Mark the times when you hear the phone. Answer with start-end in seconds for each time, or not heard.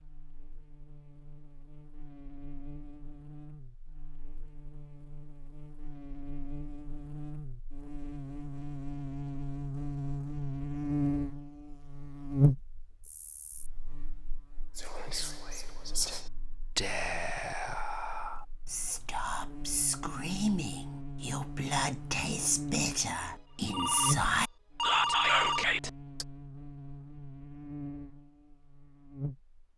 23.2-25.7.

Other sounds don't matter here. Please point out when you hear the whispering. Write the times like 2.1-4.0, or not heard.
14.8-26.2.